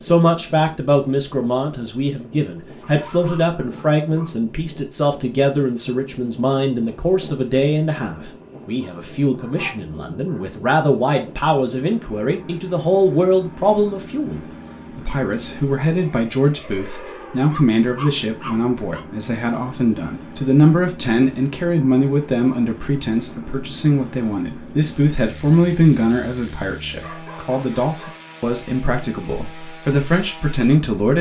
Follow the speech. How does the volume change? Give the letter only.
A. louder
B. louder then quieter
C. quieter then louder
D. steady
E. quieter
D.